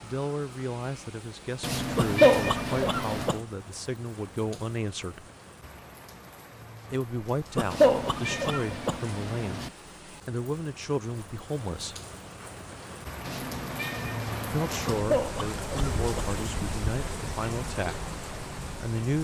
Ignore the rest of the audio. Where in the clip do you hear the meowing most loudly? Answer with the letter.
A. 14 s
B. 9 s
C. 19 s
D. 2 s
D.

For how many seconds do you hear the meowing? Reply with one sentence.
The meowing can be heard for 6 seconds in total.